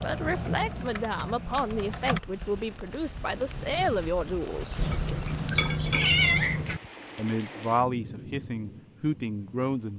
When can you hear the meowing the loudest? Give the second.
6 s.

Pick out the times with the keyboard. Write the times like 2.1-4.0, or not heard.
0.0-2.2.